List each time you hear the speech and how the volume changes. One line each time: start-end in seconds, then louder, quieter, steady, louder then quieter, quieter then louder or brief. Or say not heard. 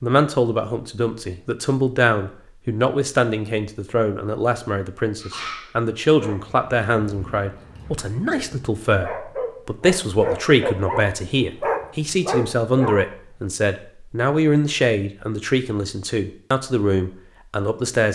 0.0-18.0 steady.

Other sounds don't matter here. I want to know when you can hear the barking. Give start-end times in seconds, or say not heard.
5.2-13.4.